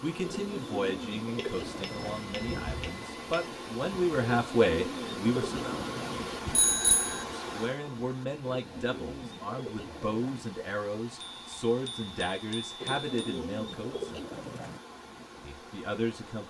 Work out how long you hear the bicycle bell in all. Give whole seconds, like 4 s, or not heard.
5 s.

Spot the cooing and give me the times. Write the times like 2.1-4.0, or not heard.
0.2-2.2, 4.2-6.2, 8.4-10.4, 12.8-14.8.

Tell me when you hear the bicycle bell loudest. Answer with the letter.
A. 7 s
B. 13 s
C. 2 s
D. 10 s
A.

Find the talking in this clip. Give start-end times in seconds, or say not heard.
0.0-5.8, 7.4-14.2, 15.4-16.4.